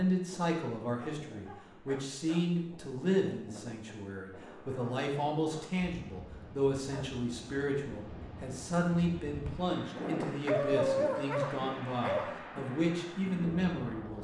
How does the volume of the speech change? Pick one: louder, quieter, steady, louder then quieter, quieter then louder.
steady.